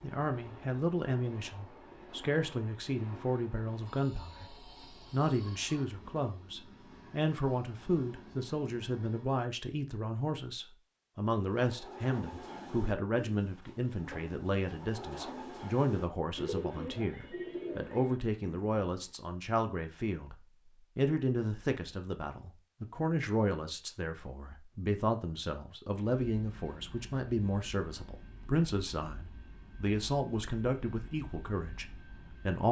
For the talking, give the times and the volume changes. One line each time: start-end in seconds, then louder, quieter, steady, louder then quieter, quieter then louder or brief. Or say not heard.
0.0-20.4 steady
20.9-32.6 steady.